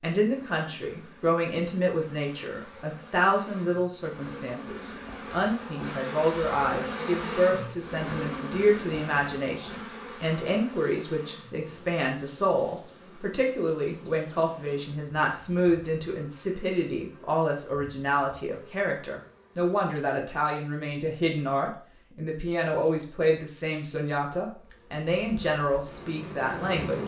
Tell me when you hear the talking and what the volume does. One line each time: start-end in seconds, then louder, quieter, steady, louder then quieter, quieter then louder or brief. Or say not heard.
0.0-27.0 steady.